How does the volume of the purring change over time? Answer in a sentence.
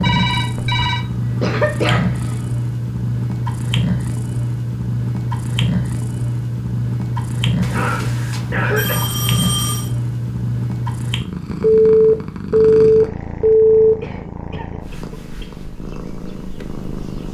The loudness of the purring goes down.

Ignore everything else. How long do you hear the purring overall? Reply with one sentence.
The purring can be heard for 17 seconds in total.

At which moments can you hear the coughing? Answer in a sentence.
You can hear the coughing from 0.8 to 2.4 s, from 7.7 to 9.2 s and from 14.0 to 15.5 s.